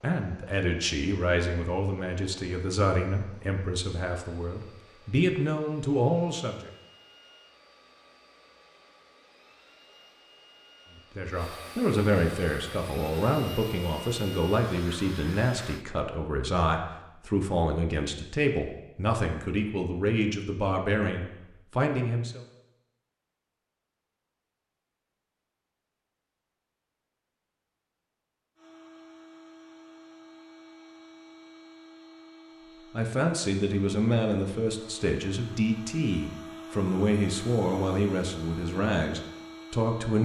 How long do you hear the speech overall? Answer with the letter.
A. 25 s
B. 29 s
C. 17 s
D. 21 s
A.